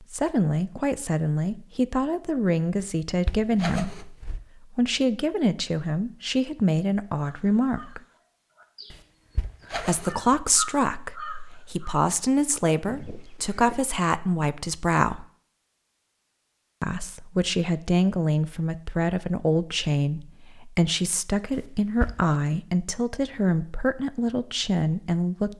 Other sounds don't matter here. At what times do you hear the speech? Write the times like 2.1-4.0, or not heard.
0.0-8.0, 9.8-15.2, 16.8-25.5.